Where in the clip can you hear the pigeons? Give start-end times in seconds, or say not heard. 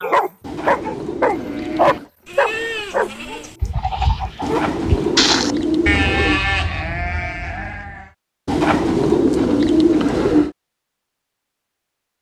0.4-2.1, 4.4-6.5, 8.4-10.6.